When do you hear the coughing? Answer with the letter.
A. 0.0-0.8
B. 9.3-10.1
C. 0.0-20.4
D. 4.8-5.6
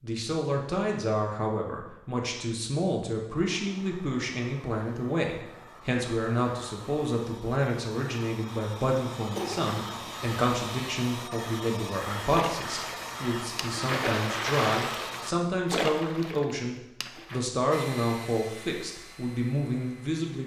B.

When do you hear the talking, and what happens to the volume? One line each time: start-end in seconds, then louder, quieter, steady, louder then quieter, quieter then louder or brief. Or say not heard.
0.0-20.4 steady.